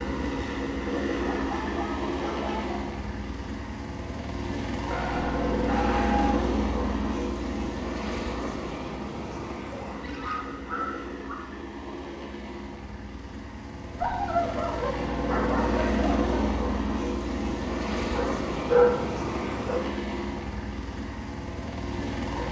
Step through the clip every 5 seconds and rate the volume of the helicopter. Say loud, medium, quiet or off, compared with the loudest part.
loud, loud, medium, loud, medium.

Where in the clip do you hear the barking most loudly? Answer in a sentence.
The volume of the barking peaks at 19 seconds.